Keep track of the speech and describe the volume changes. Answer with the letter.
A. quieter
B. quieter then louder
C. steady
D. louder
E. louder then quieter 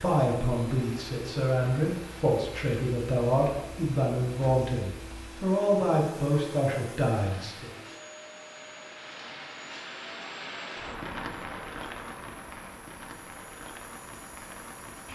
C.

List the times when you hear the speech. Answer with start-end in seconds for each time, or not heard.
0.0-7.7.